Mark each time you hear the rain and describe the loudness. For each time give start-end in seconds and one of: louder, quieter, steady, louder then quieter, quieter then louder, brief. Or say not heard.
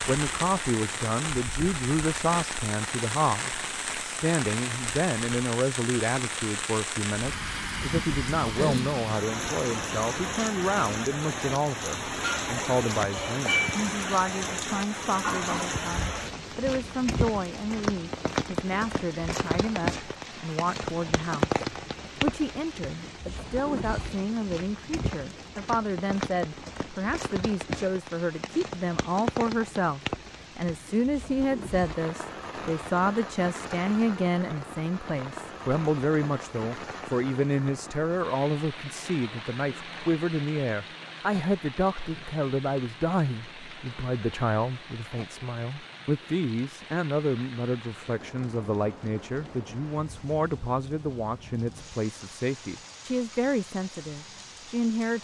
0.0-55.2 quieter.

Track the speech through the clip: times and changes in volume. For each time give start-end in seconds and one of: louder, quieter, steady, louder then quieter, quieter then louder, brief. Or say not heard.
0.1-55.2 steady.